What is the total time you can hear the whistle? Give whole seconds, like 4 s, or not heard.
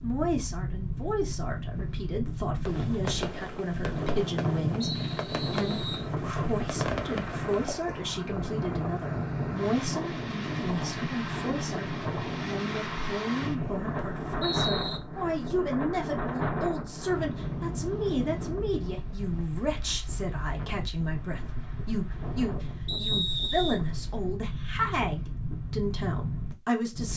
4 s.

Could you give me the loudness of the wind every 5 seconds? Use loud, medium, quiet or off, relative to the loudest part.
loud, loud, loud, loud, medium, loud.